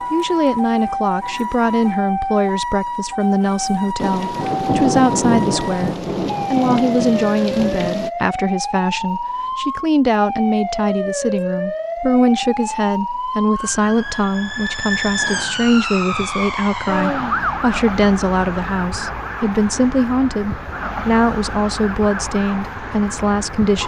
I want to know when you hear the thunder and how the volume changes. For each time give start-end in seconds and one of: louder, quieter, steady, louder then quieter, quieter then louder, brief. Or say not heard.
4.0-8.1 quieter.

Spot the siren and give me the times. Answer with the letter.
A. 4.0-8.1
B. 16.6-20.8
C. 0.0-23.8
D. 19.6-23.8
C.